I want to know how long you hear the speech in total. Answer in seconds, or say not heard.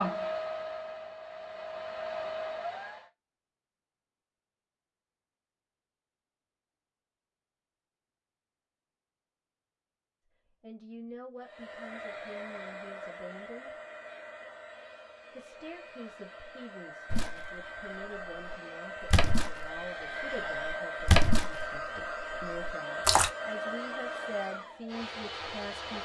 14 s.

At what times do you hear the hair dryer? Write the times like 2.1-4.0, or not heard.
0.0-3.1, 11.4-26.0.